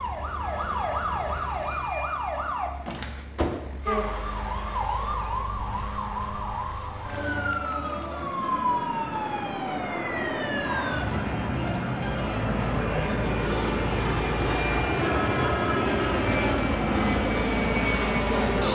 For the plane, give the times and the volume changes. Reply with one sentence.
The plane can be heard from 0.0 to 18.6 s, getting louder.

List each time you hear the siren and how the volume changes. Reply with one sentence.
The siren can be heard from 0.0 to 18.6 s, at a steady volume.